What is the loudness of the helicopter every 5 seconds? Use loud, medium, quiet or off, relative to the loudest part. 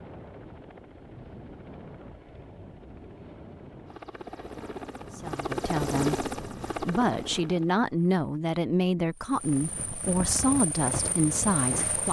medium, loud, loud.